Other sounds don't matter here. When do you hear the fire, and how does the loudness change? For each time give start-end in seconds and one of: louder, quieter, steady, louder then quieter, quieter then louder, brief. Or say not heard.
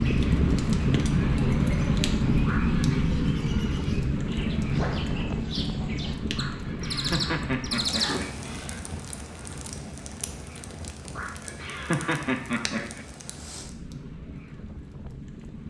0.0-15.6 quieter.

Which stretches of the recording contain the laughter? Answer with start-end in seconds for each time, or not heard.
2.5-3.0, 6.3-8.8, 11.2-13.1.